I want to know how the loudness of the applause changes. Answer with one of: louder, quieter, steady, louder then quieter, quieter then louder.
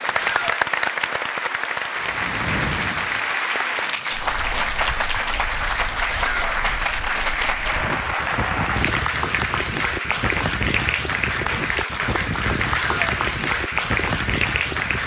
steady.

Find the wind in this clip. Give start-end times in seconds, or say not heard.
4.2-15.0.